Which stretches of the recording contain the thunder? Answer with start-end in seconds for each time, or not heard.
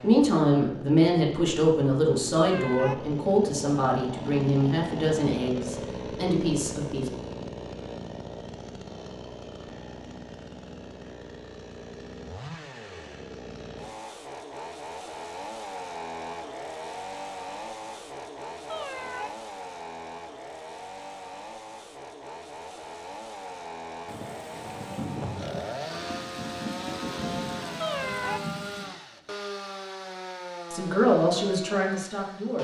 24.1-28.9.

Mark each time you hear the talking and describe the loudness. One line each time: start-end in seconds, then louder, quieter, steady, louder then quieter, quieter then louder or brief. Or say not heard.
0.0-7.1 quieter
30.7-32.5 brief.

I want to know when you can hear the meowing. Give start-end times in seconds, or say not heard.
2.4-3.0, 18.6-19.3, 27.8-28.4.